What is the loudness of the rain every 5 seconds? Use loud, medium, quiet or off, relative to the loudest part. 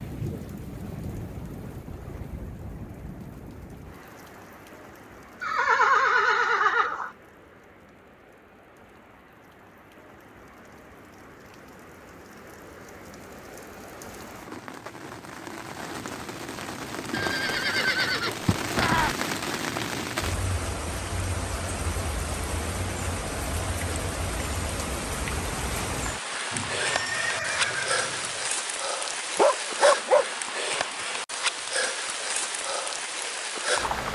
medium, quiet, quiet, loud, loud, loud, loud.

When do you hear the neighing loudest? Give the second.
6 s.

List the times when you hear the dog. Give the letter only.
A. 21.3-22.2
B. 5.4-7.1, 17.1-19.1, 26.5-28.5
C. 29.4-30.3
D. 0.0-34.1
C.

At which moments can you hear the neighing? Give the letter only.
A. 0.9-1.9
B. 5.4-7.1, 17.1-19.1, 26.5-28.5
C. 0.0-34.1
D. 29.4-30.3
B.